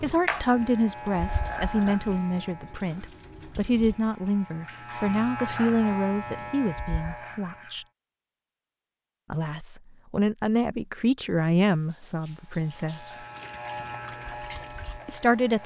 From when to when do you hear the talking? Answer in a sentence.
The talking can be heard from 0.0 to 7.8 s, from 9.3 to 13.2 s and from 15.1 to 15.6 s.